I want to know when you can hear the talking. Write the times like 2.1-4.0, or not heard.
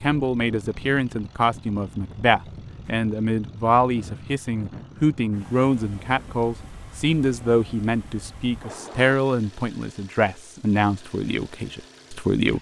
0.0-12.5.